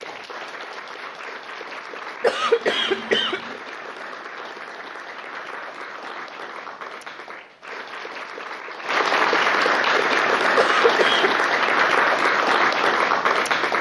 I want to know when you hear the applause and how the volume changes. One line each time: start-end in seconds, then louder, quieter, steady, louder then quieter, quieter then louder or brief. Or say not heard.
0.0-13.7 louder.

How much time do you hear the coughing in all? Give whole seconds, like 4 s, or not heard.
2 s.